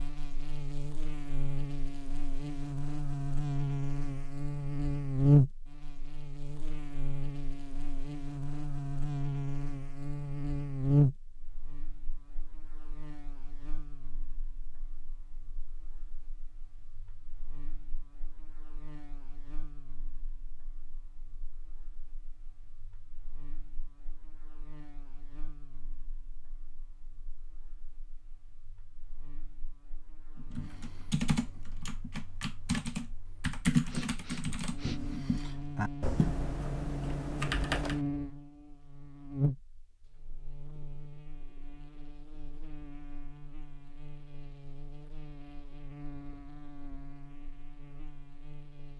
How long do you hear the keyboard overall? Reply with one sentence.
The keyboard can be heard for 8 seconds in total.